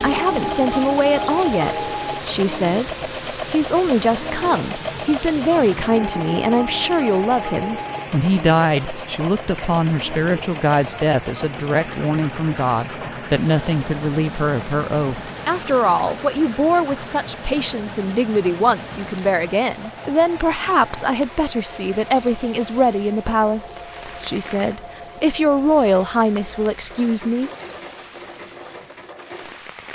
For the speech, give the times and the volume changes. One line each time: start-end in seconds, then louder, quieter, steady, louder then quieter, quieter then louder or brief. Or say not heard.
0.0-27.5 steady.